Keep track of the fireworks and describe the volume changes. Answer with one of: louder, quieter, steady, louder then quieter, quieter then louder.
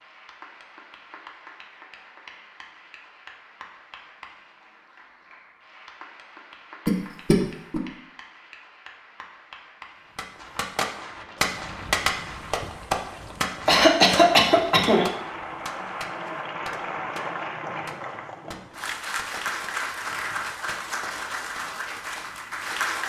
quieter.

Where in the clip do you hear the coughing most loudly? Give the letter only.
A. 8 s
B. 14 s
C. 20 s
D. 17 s
B.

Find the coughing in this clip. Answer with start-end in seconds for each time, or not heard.
6.8-7.8, 13.7-15.1.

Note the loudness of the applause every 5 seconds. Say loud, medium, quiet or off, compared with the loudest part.
quiet, quiet, quiet, loud, loud.